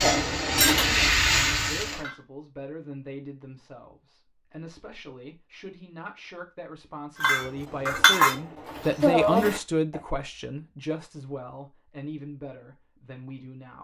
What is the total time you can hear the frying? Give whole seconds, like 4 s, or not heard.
2 s.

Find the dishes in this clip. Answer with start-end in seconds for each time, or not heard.
0.0-2.1, 7.2-10.0.